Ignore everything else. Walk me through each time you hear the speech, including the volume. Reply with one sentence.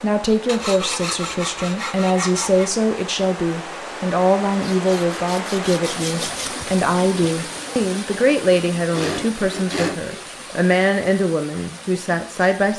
You can hear the speech from 0.0 to 12.7 s, at a steady volume.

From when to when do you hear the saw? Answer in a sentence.
The saw can be heard from 0.5 to 2.7 s, from 4.6 to 6.5 s and from 8.8 to 10.3 s.